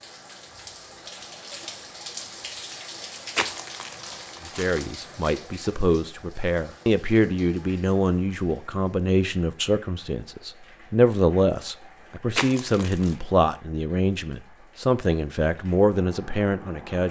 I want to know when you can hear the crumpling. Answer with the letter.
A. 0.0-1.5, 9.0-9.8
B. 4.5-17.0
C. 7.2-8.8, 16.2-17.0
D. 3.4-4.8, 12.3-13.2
D.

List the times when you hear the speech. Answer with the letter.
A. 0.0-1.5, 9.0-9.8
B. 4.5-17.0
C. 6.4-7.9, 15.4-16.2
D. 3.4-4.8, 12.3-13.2
B.